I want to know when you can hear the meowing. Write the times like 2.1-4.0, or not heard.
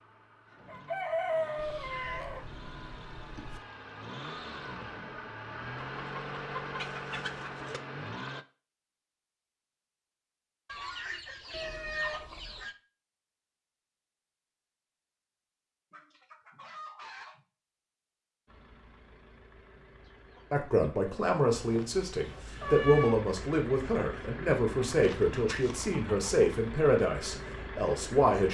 1.6-3.6, 11.5-12.7, 21.5-23.1.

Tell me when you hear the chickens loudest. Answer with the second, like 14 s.
1 s.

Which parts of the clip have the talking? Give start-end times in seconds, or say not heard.
20.5-28.4.